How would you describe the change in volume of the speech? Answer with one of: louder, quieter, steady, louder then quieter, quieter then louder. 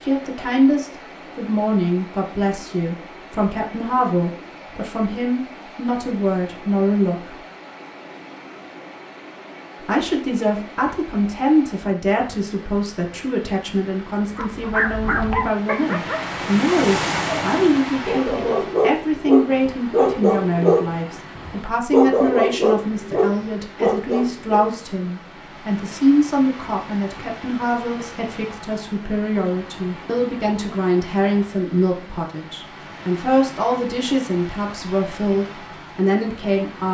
steady.